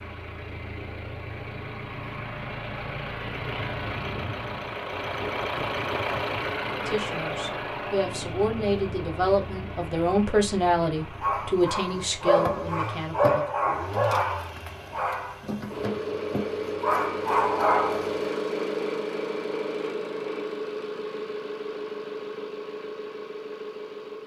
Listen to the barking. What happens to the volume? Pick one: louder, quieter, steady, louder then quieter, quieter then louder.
quieter then louder.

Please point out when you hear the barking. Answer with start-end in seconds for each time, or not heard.
11.0-18.1.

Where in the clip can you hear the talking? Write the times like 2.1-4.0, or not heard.
6.8-13.4.